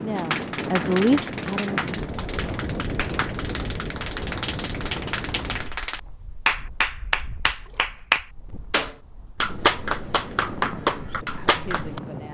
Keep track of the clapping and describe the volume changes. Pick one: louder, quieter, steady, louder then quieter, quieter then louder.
louder.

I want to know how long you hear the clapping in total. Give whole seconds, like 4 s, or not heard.
12 s.